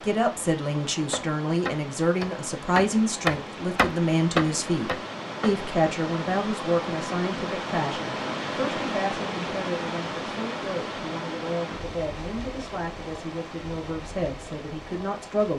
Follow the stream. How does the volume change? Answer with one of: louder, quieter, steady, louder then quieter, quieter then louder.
louder then quieter.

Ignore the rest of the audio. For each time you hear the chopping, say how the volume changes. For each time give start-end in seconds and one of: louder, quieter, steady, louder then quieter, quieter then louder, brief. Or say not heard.
1.1-5.7 louder then quieter.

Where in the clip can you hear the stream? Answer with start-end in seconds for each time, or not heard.
0.0-15.5.